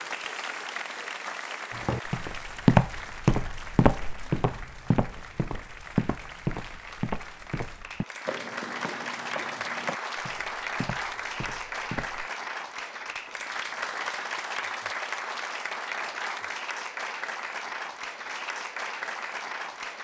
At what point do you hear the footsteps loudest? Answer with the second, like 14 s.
3 s.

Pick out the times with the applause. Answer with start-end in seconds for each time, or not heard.
0.0-19.9.